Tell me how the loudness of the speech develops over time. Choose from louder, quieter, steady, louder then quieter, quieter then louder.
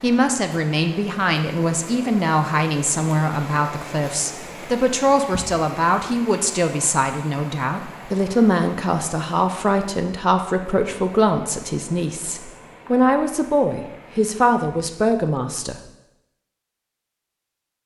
steady.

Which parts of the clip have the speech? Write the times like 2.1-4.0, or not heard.
0.0-15.8.